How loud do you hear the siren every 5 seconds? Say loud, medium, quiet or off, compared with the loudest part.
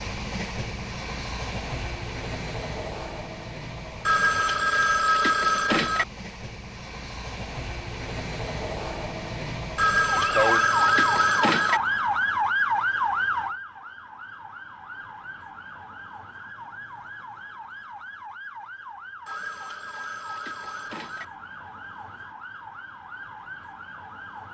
off, off, loud, quiet, quiet.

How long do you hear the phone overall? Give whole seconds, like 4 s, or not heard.
6 s.